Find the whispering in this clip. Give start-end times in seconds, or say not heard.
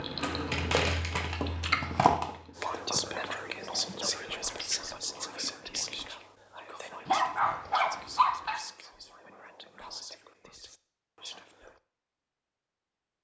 2.5-11.8.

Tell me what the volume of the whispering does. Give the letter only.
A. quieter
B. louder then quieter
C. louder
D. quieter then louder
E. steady
A.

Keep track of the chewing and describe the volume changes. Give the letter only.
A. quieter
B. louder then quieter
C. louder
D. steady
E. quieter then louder
A.